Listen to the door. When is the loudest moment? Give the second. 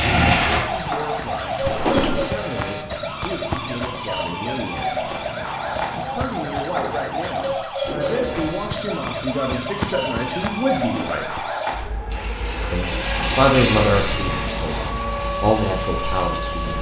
2 s.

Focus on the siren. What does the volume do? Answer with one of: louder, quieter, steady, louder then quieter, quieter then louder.
steady.